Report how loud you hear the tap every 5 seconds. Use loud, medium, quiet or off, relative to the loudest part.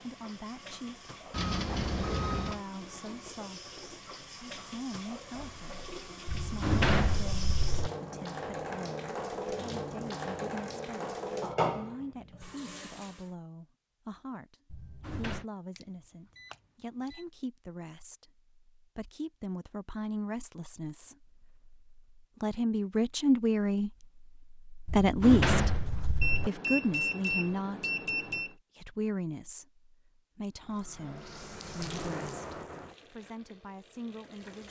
medium, loud, loud, off, off, off, medium.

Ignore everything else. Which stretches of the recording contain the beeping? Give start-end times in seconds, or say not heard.
1.3-2.6, 15.8-17.2, 26.2-28.6.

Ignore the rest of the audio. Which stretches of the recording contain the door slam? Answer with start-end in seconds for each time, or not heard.
6.2-7.9, 14.7-15.4, 24.9-26.5.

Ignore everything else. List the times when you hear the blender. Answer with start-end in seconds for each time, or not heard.
not heard.